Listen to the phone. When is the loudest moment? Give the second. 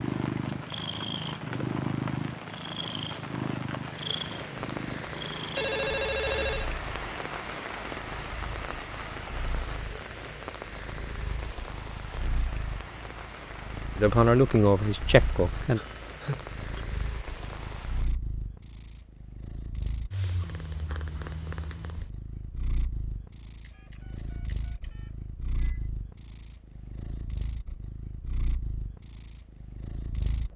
6 s.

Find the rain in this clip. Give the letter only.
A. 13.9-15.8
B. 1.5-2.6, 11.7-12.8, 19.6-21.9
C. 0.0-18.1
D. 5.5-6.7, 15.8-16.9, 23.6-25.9
C.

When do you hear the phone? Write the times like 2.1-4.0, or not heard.
5.5-6.7, 15.8-16.9, 23.6-25.9.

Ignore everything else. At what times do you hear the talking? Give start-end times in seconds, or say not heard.
13.9-15.8.